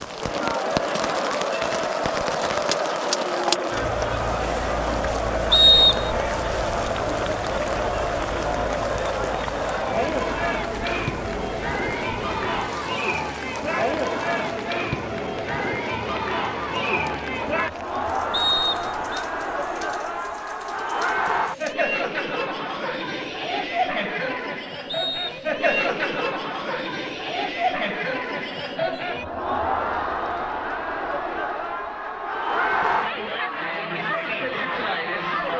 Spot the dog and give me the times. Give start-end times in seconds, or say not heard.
not heard.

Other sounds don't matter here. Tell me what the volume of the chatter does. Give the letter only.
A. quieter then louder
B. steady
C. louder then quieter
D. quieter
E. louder
B.